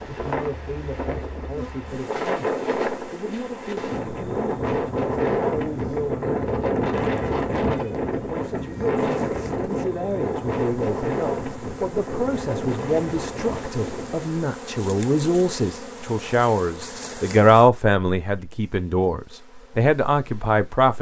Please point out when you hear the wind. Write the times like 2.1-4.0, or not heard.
0.0-14.2.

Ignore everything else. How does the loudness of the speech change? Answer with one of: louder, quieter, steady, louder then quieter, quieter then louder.
louder.